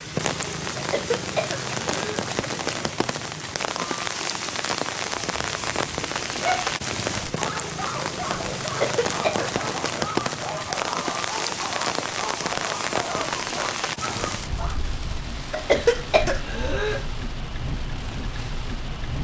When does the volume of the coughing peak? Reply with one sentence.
The volume of the coughing peaks at 16 seconds.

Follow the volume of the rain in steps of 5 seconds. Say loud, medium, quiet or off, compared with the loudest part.
loud, loud, loud, medium.